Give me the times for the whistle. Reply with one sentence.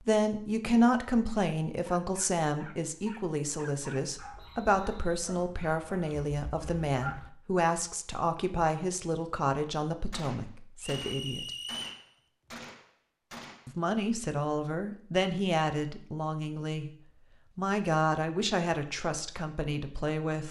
You can hear the whistle from 4.3 to 5.0 s and from 10.8 to 12.1 s.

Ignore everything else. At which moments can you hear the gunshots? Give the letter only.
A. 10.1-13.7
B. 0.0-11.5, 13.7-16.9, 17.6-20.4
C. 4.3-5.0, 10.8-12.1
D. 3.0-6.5
A.